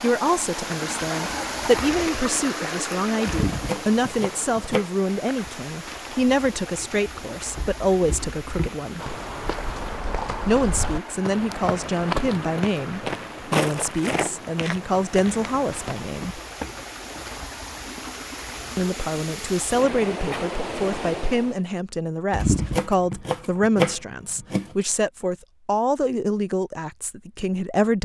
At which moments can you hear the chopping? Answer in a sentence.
The chopping can be heard from 3.2 to 4.8 s and from 22.3 to 24.7 s.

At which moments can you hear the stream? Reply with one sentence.
The stream can be heard from 0.0 to 21.6 s.